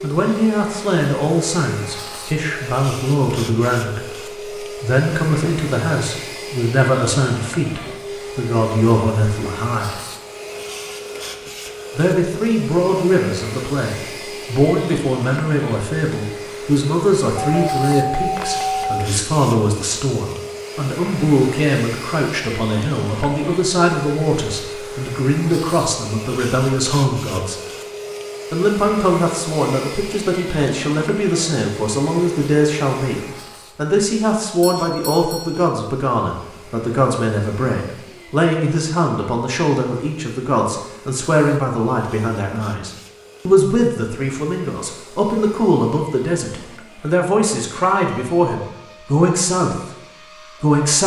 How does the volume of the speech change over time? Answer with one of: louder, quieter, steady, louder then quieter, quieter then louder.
steady.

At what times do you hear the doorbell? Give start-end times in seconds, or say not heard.
17.4-19.1, 34.6-35.8.